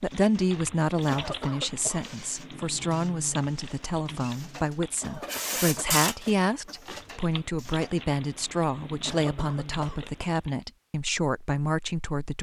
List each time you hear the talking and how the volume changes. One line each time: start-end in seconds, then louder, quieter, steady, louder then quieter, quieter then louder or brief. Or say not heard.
0.0-12.3 steady.